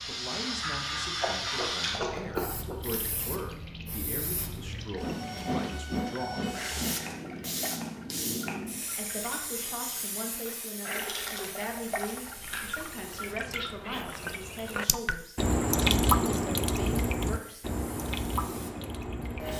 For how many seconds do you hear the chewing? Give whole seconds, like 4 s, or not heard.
4 s.